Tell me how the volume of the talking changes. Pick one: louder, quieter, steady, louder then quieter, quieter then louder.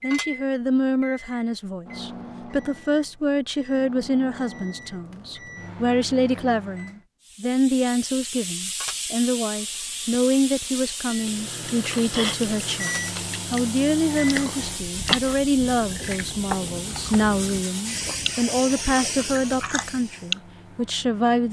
steady.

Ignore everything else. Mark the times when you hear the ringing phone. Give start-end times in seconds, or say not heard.
not heard.